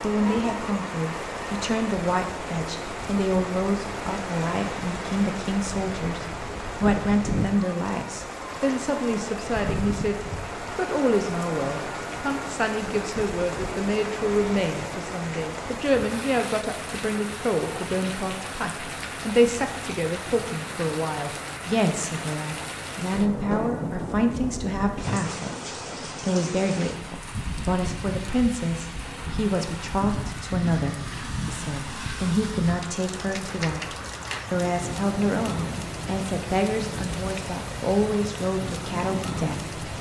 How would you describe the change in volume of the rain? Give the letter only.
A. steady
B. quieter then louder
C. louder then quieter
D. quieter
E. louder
A.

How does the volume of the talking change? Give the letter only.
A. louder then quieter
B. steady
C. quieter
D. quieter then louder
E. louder
B.